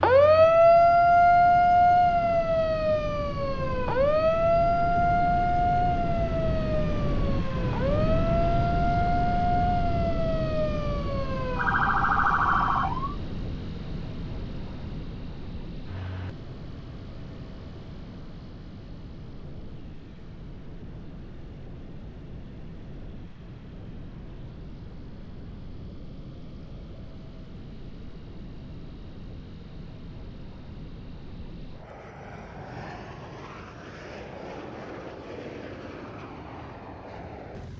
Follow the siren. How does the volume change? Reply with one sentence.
The volume of the siren goes down.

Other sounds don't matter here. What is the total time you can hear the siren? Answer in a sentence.
You can hear the siren for 13 seconds altogether.